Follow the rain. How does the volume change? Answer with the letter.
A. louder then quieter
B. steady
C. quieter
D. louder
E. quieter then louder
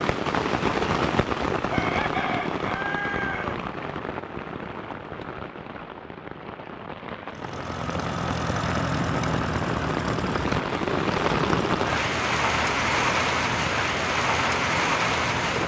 E.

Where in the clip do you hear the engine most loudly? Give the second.
9 s.